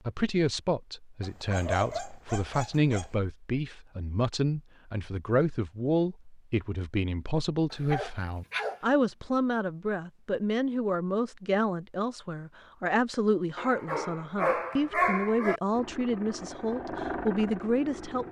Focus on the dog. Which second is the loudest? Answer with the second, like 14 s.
15 s.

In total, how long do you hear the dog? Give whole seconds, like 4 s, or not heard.
5 s.